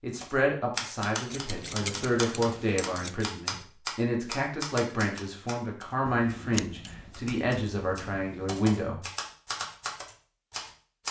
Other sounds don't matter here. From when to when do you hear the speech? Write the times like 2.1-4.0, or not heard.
0.0-9.0.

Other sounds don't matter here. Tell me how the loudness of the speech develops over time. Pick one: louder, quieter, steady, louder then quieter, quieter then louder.
steady.